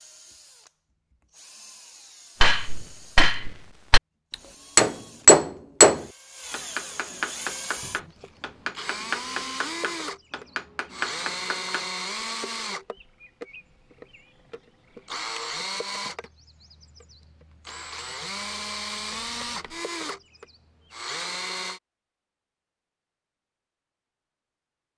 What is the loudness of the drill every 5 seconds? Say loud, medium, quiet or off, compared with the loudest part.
quiet, loud, loud, loud, loud.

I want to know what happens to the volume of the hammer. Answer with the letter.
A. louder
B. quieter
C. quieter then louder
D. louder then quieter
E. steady
D.